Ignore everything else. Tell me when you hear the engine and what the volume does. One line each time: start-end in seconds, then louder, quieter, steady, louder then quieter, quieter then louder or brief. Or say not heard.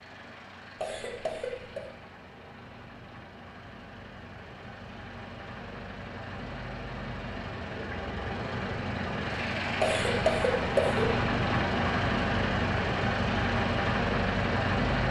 0.0-15.0 louder.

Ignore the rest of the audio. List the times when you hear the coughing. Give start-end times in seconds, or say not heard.
0.8-1.8, 9.8-11.2.